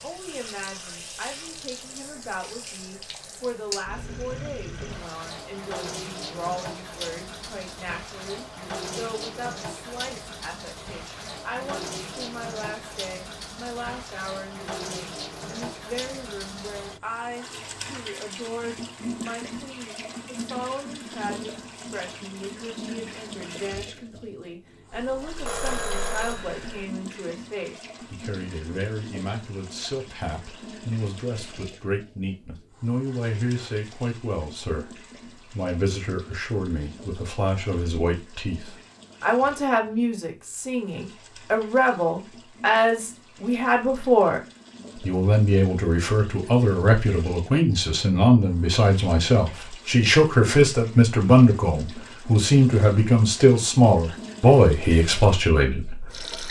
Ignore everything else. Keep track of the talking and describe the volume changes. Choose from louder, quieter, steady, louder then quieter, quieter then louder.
louder.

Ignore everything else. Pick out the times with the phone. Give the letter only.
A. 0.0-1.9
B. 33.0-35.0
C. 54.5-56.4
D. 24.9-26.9
D.